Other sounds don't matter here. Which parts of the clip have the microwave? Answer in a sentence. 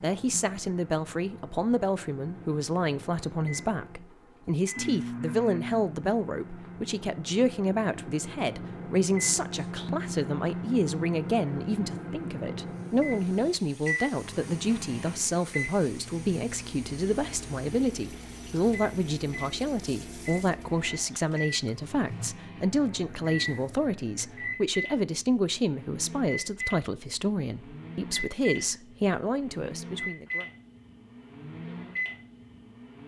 The microwave can be heard from 0.0 to 33.0 s.